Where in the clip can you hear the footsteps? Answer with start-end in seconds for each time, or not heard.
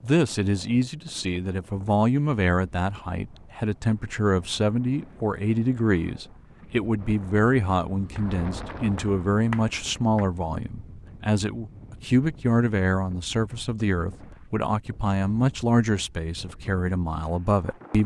not heard.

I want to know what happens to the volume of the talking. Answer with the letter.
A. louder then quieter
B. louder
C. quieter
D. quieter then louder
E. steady
E.